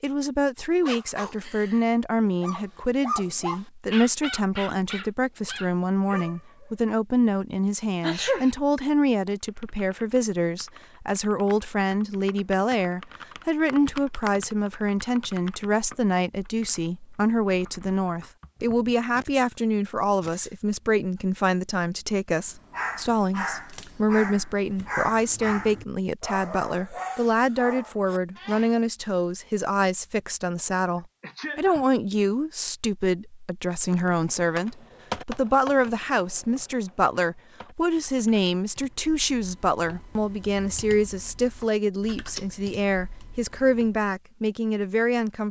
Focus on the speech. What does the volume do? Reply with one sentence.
The volume of the speech stays about the same.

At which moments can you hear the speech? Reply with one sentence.
The speech can be heard from 0.0 to 45.4 s.